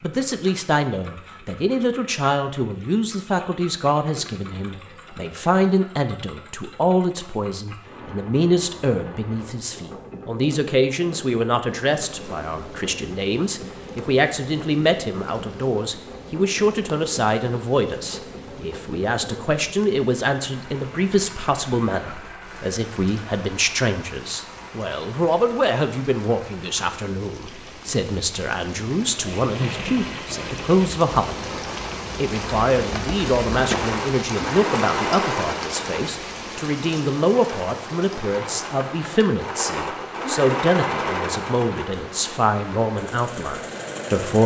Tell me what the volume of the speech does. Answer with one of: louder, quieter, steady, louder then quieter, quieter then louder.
steady.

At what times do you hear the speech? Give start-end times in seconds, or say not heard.
0.0-44.4.